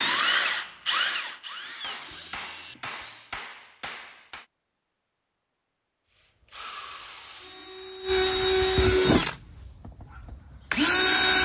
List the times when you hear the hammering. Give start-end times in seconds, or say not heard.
1.8-4.5.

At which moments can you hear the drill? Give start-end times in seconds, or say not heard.
0.0-3.4, 6.2-11.4.